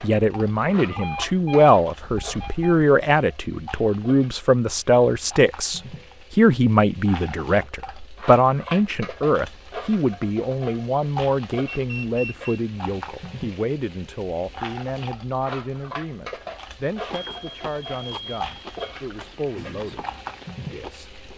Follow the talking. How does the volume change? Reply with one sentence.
The volume of the talking goes down.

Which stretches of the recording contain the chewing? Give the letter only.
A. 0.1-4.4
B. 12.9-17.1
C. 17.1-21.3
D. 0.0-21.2
C.